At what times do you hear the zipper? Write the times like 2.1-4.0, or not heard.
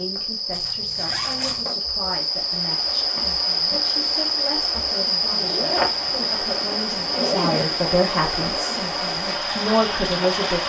0.5-1.7, 5.3-7.8.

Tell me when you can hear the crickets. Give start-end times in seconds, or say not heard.
0.0-10.4.